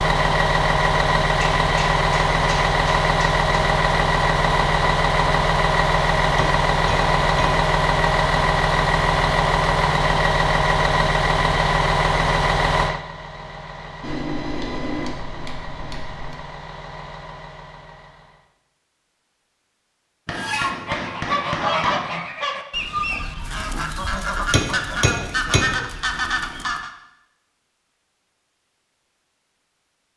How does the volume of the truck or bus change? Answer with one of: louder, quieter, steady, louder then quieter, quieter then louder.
quieter.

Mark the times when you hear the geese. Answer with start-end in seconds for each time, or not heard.
20.3-26.9.